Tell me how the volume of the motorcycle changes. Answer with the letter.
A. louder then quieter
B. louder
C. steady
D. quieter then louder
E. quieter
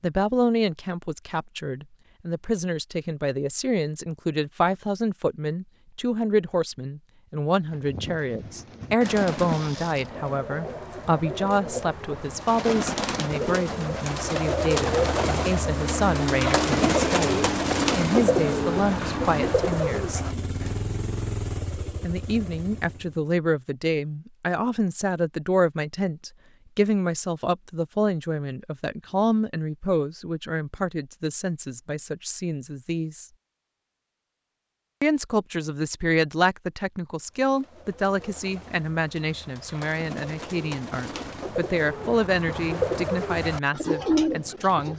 E.